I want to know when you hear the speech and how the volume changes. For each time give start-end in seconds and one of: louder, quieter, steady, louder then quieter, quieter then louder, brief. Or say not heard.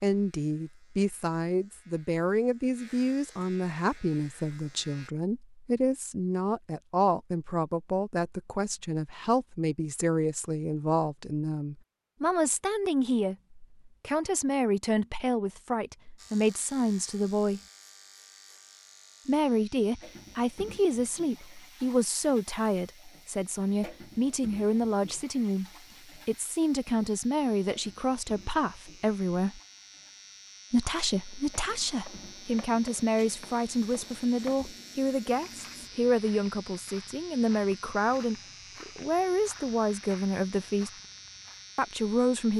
0.0-17.6 steady
19.2-29.6 steady
30.7-40.9 steady
41.8-42.5 brief.